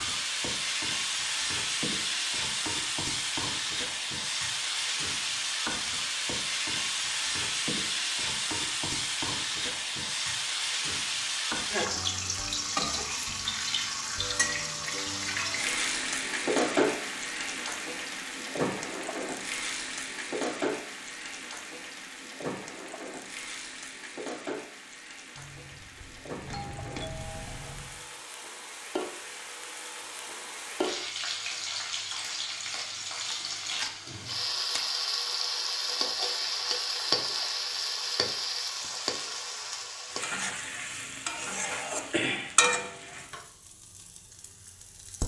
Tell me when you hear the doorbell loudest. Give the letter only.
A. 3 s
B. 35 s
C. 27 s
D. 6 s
C.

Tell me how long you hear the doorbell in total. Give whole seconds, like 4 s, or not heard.
3 s.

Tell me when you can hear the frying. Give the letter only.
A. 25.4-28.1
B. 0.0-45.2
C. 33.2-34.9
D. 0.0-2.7
B.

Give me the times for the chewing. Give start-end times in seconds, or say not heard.
33.2-34.9.